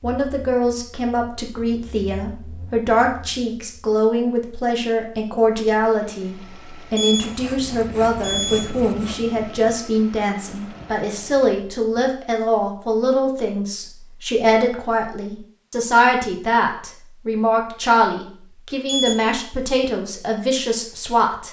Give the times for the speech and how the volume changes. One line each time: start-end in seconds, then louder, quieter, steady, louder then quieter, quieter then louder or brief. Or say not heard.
0.0-21.4 steady.